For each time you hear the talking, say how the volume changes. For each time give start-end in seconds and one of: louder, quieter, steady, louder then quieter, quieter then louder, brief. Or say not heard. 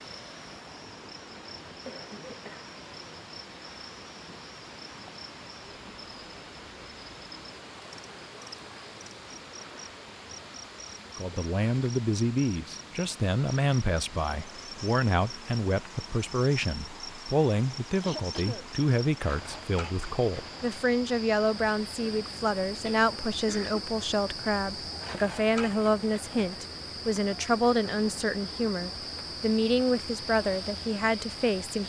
11.2-31.8 steady.